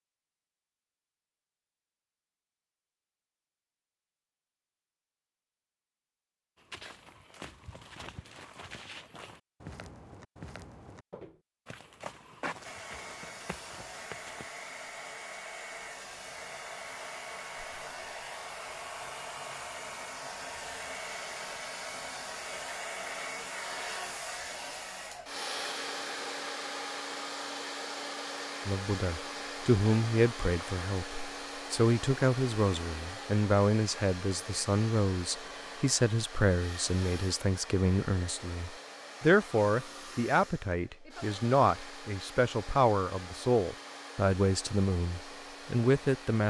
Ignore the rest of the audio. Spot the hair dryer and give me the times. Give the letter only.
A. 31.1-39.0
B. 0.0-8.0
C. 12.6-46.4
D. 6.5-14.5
C.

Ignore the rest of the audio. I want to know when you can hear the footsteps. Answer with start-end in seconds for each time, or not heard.
6.5-14.5.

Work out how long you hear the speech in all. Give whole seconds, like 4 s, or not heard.
18 s.